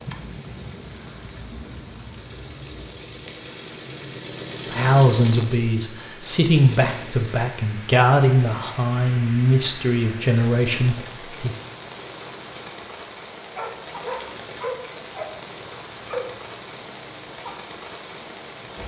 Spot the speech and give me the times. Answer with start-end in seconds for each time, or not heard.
4.7-11.6.